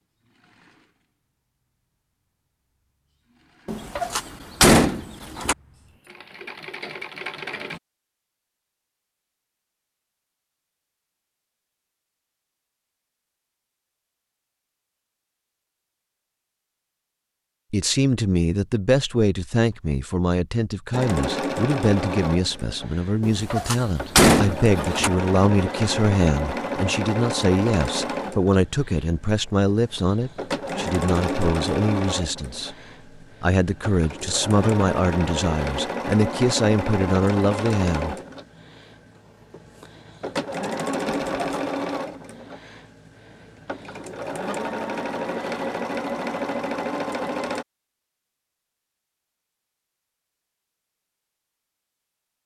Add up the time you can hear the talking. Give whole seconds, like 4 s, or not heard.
20 s.